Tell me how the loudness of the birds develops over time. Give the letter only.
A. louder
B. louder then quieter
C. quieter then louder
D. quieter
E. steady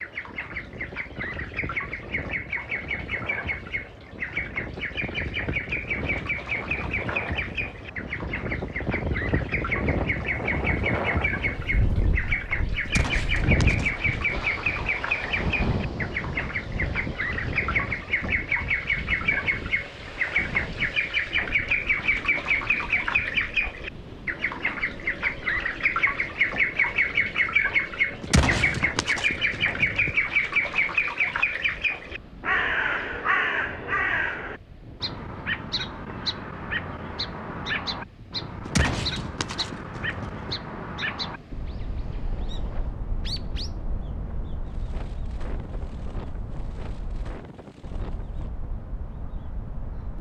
B.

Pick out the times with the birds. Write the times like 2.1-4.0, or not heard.
0.0-50.1.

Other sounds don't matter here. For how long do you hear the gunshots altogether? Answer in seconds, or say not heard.
6 s.